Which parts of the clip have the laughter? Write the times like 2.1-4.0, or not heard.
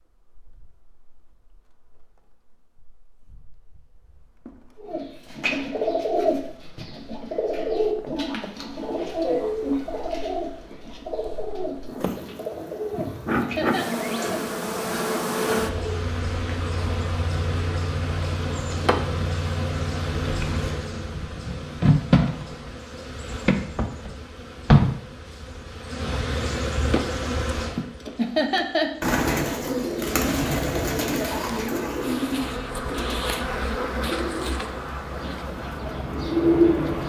12.9-13.9, 27.8-29.1.